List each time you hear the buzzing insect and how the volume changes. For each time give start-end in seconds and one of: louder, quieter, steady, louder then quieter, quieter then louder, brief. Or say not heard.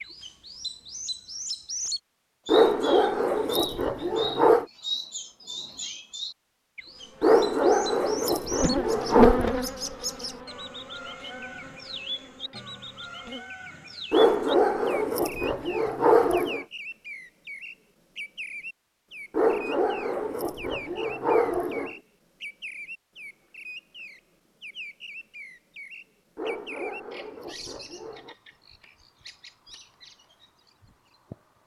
7.0-13.6 louder then quieter.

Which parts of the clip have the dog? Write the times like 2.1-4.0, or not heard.
2.5-4.7, 7.2-9.5, 14.1-16.6, 19.3-21.9, 26.4-28.4.